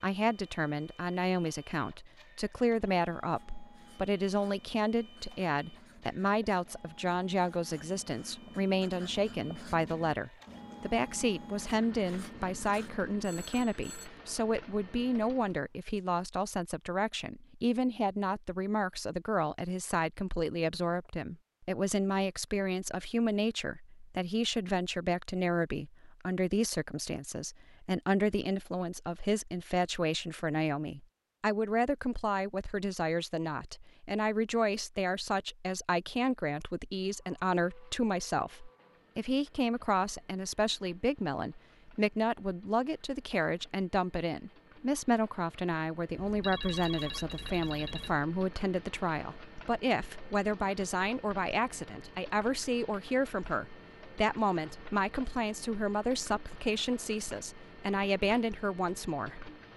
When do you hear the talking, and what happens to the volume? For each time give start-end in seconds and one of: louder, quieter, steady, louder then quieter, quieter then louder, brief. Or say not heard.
0.0-59.5 steady.